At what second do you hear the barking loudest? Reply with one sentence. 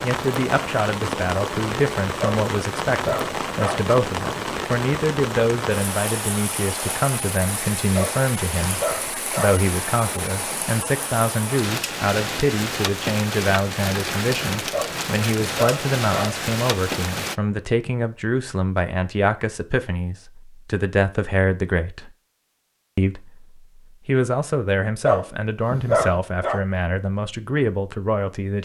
The volume of the barking peaks at 26 seconds.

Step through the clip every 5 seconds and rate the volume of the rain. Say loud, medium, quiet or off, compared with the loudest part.
loud, loud, loud, loud, off, off.